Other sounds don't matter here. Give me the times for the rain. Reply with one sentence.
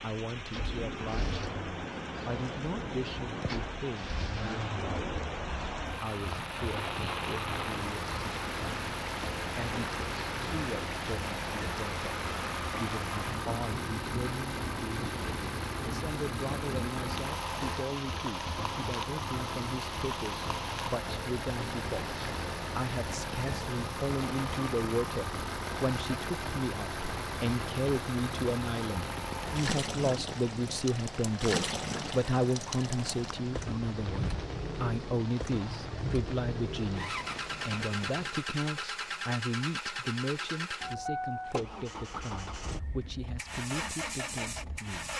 The rain can be heard from 0.0 to 38.4 s.